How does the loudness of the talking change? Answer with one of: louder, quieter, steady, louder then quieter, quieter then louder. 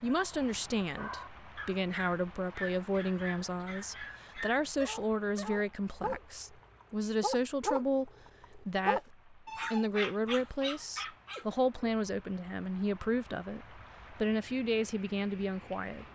steady.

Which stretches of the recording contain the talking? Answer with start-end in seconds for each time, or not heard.
0.0-16.1.